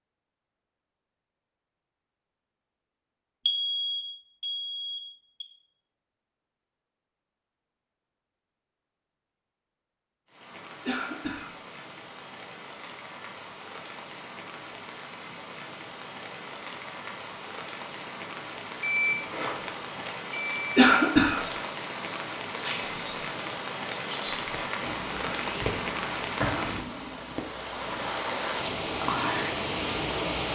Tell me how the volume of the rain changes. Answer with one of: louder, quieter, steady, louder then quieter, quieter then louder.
louder.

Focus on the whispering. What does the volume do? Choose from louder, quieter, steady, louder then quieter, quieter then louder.
steady.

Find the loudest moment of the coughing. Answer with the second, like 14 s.
21 s.